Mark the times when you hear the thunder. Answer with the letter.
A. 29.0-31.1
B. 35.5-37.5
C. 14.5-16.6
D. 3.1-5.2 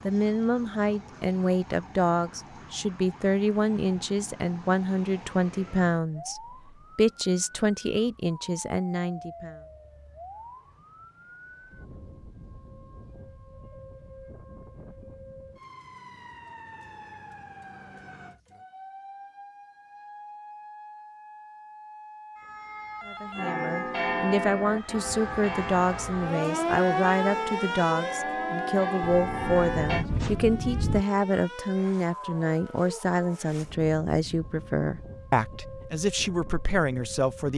A.